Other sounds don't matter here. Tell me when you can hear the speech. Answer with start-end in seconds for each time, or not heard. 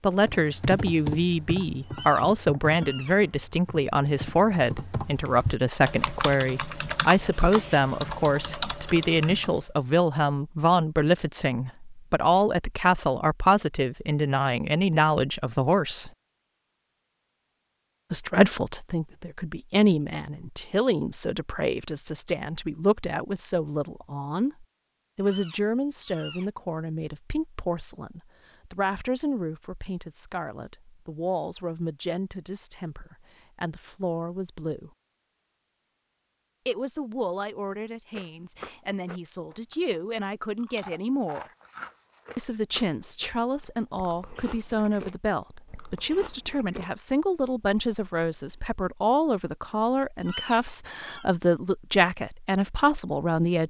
0.0-16.1, 18.1-34.9, 36.6-41.5, 42.4-53.6.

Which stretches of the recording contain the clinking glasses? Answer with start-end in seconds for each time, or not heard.
not heard.